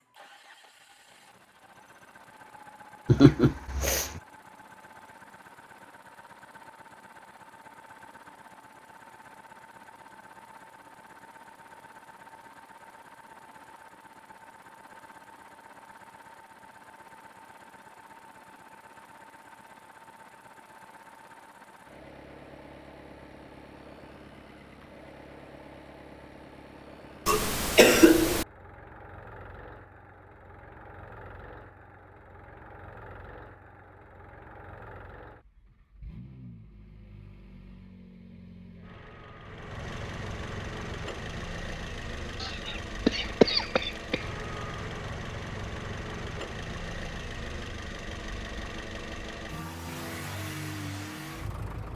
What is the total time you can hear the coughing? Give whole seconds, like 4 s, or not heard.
4 s.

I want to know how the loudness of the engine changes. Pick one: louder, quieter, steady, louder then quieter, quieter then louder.
louder.